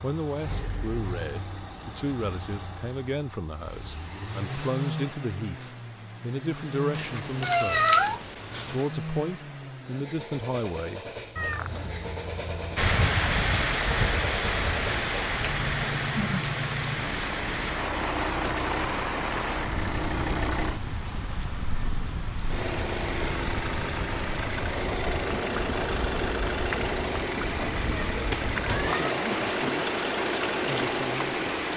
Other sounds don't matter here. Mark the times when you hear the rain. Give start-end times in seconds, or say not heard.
12.8-31.7.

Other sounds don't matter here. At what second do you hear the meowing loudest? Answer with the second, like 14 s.
8 s.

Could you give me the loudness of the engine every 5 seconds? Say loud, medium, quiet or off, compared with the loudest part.
medium, medium, medium, loud, loud, loud, loud.